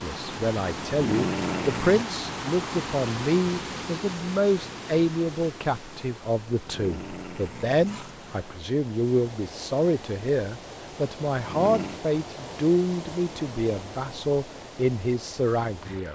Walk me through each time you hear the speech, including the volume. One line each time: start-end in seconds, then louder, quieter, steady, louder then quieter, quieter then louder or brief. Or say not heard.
0.0-16.0 steady.